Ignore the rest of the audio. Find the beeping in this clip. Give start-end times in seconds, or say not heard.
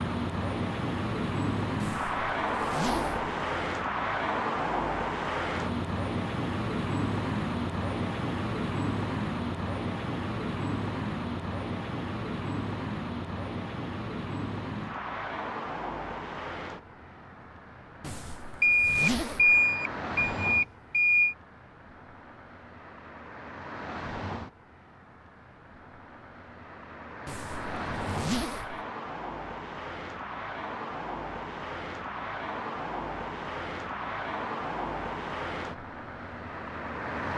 18.6-21.4.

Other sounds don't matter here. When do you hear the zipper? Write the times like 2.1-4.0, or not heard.
1.8-3.3, 18.0-19.6, 27.2-28.8.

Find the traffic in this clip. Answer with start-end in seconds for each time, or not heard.
0.0-37.3.